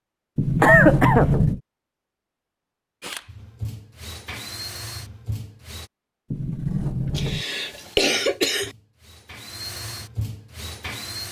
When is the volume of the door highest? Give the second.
1 s.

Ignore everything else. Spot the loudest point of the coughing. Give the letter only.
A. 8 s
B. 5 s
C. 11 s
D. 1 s
D.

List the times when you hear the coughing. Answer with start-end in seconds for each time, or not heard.
0.6-1.4, 7.2-8.7.